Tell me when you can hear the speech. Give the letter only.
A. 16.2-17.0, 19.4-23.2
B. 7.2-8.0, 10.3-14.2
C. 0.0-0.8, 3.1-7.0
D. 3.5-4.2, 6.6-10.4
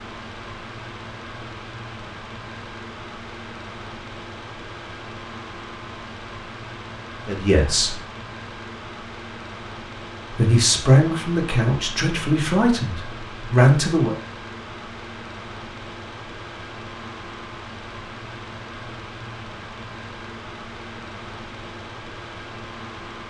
B.